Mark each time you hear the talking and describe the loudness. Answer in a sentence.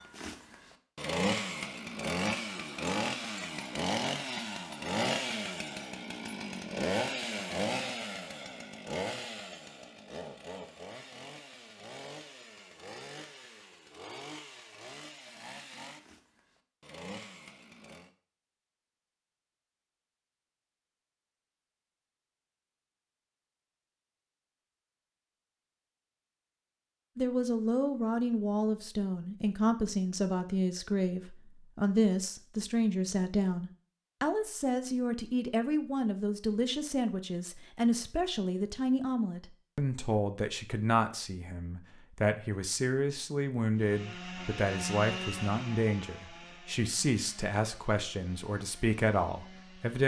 The talking can be heard from 27.1 to 50.0 s, at a steady volume.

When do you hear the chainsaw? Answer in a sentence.
The chainsaw can be heard from 0.0 to 18.1 s and from 43.8 to 50.0 s.